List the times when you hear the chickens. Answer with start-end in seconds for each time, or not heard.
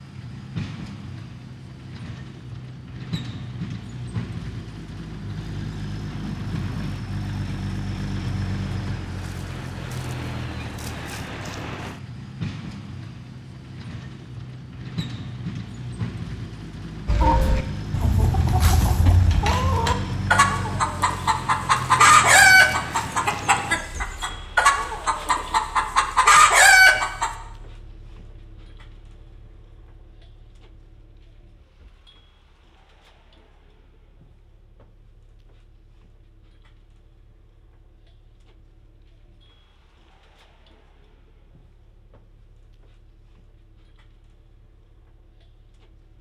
17.1-27.3.